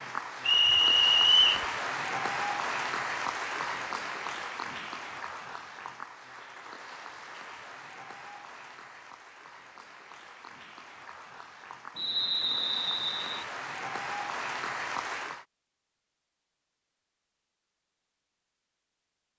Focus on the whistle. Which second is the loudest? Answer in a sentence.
The loudest moment of the whistle is at 1 second.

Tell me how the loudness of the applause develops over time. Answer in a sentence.
The loudness of the applause goes down, then up.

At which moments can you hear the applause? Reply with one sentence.
The applause can be heard from 0.0 to 15.4 s.